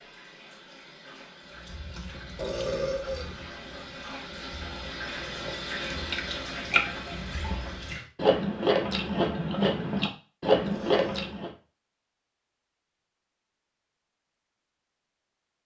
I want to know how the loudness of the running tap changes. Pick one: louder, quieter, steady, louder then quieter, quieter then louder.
louder.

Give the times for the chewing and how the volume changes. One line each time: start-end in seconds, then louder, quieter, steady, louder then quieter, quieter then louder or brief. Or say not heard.
1.5-11.5 louder.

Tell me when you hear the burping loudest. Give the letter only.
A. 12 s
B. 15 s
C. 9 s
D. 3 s
D.